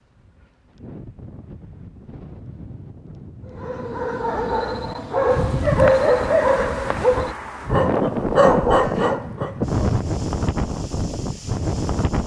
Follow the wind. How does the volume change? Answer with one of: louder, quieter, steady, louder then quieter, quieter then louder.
louder.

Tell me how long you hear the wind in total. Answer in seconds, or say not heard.
12 s.